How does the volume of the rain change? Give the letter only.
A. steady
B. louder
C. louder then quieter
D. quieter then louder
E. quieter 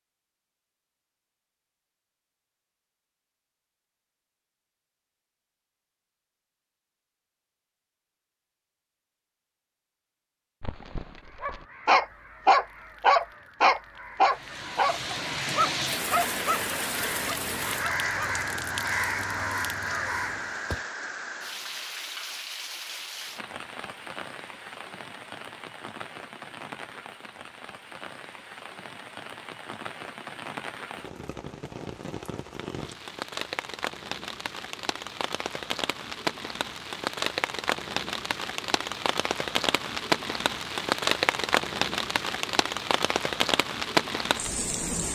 D.